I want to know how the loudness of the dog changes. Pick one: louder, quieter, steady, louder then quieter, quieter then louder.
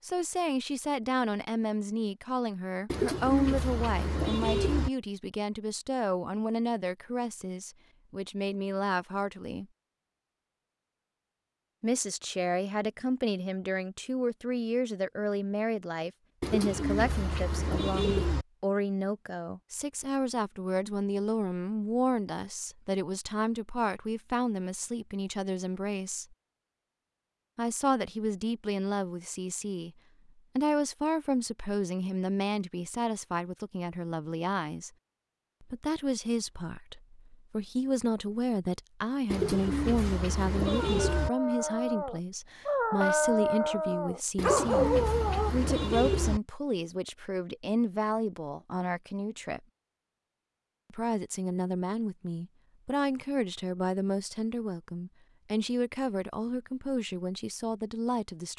louder.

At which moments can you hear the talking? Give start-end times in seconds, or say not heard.
0.0-9.7, 11.8-26.4, 27.6-29.9, 30.6-34.9, 35.6-49.6, 50.9-58.5.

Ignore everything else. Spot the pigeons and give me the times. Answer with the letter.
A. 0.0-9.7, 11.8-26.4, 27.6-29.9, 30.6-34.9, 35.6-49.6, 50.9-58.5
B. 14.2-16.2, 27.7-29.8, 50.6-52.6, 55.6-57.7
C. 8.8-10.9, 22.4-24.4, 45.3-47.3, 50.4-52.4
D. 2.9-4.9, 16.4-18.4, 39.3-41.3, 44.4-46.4
D.